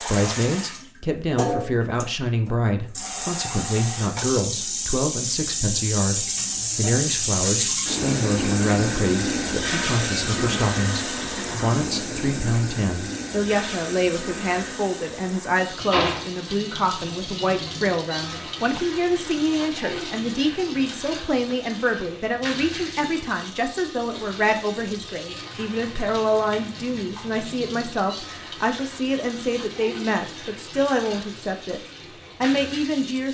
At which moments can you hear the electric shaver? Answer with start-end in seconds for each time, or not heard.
not heard.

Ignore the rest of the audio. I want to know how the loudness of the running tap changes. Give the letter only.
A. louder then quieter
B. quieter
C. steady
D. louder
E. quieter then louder
B.